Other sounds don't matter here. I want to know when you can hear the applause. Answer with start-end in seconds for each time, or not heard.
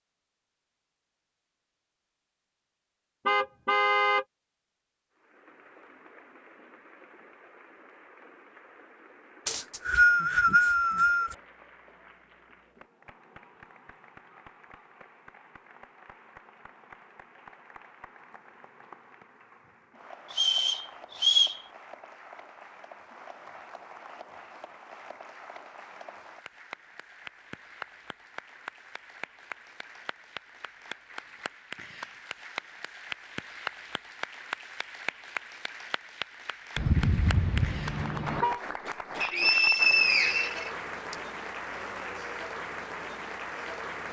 5.2-44.0.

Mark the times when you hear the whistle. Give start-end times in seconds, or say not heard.
9.4-11.3, 20.3-21.6, 39.2-41.1.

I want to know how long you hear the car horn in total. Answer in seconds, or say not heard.
3 s.